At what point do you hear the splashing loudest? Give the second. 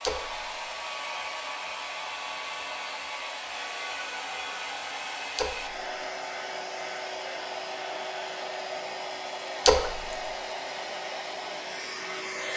10 s.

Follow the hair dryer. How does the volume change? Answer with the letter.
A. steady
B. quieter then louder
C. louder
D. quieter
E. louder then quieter
A.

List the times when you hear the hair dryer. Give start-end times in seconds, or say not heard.
0.0-12.5.